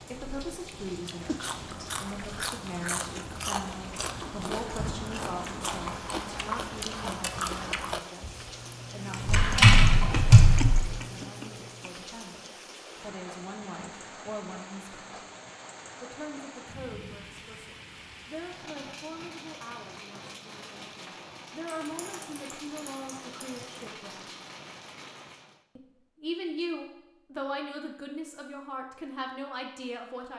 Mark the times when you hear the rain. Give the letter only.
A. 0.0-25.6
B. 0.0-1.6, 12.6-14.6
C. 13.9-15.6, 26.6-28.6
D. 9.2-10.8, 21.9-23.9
A.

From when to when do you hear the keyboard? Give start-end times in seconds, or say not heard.
9.2-10.8, 21.9-23.9.